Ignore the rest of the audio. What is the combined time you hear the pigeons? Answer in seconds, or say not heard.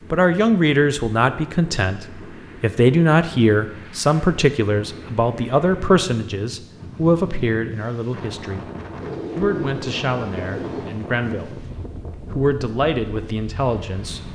2 s.